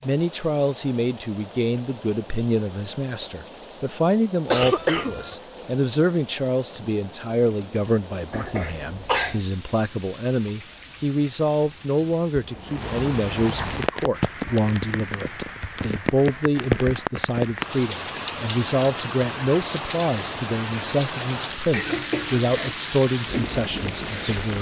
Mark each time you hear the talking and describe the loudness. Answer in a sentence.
The talking can be heard from 0.0 to 24.5 s, at a steady volume.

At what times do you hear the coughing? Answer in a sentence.
You can hear the coughing from 4.5 to 5.3 s, from 8.3 to 9.4 s and from 21.7 to 22.8 s.